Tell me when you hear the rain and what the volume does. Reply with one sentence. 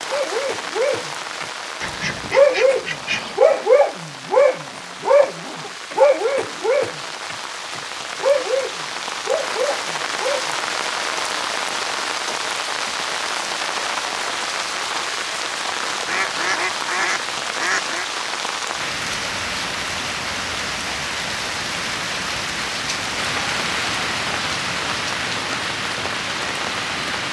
The rain can be heard from 0.0 to 27.2 s, getting louder.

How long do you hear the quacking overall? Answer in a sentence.
The quacking can be heard for 4 seconds in total.